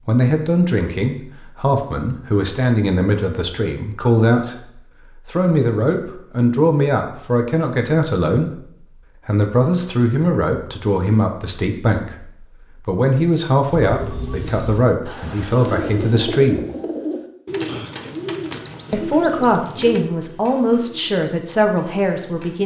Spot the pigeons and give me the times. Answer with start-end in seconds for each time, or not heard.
13.7-22.6.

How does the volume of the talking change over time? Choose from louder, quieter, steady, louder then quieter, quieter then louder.
steady.